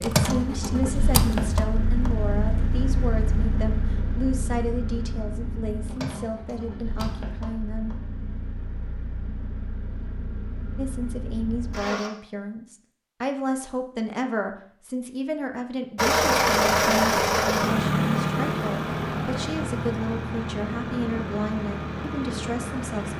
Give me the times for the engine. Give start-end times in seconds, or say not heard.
0.0-12.1, 15.9-23.1.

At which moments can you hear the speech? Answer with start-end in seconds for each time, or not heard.
0.0-7.9, 10.8-23.1.